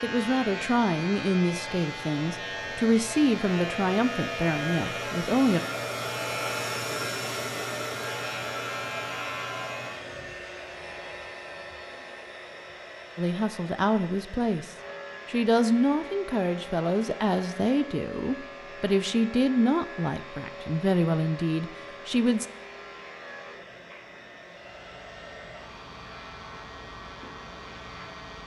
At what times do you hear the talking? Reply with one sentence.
The talking can be heard from 0.0 to 5.6 s and from 13.2 to 22.4 s.